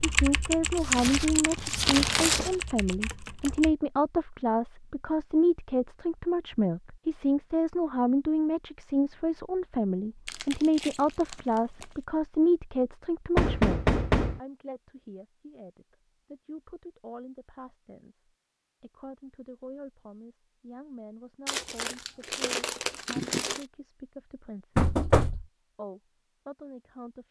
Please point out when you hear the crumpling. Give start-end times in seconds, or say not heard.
0.8-3.0, 10.2-11.8, 21.4-23.6.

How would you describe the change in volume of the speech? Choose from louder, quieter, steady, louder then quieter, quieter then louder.
quieter.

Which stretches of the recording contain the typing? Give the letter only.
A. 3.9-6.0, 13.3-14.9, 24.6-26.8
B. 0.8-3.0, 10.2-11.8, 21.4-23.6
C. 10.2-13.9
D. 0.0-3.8
D.